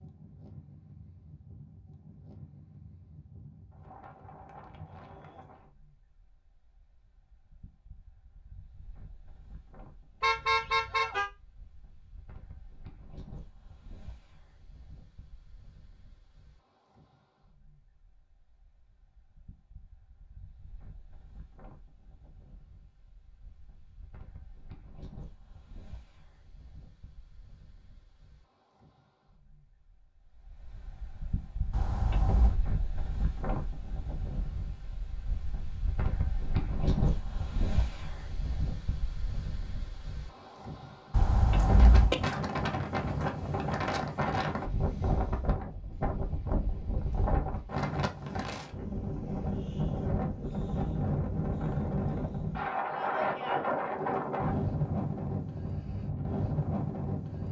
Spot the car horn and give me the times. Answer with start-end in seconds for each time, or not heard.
10.2-11.3, 31.7-32.6, 41.1-42.1.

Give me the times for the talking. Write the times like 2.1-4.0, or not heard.
not heard.